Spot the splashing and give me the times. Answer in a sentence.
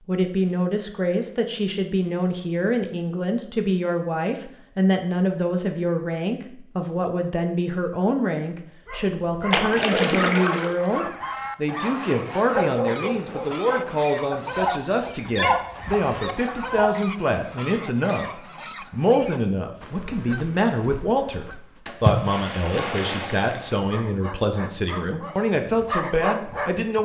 You can hear the splashing from 9.5 to 10.8 s and from 21.9 to 23.8 s.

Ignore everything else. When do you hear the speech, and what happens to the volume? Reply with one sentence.
You can hear the speech from 0.1 to 27.0 s, at a steady volume.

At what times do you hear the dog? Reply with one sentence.
The dog can be heard from 8.8 to 16.9 s and from 23.8 to 27.0 s.